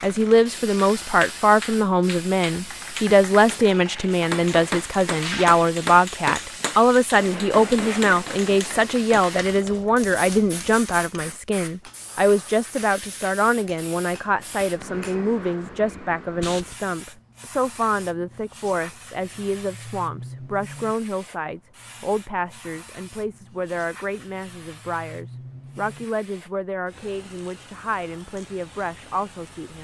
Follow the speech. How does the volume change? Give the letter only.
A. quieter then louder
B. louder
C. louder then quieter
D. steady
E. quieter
E.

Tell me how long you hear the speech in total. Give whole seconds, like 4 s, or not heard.
30 s.